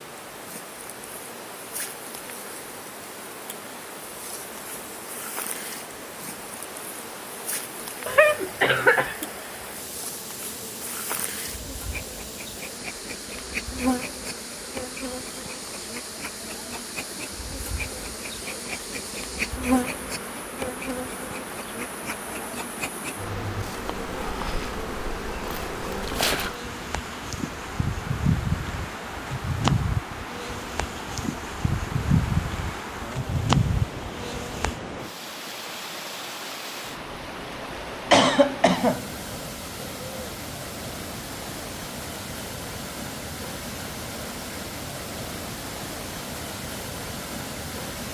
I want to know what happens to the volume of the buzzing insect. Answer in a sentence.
The loudness of the buzzing insect goes up.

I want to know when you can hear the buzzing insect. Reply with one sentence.
You can hear the buzzing insect from 0.0 to 34.8 s.